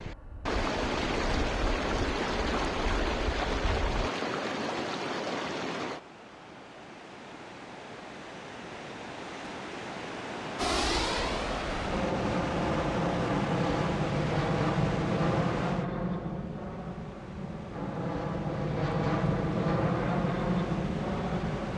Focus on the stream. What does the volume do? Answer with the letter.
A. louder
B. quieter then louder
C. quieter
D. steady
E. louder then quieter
C.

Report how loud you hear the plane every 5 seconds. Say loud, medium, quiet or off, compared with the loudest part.
quiet, off, loud, loud, loud.